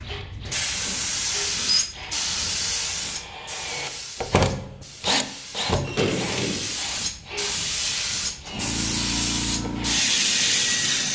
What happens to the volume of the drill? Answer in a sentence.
The volume of the drill goes up, then down.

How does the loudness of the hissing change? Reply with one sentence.
The loudness of the hissing goes down, then up.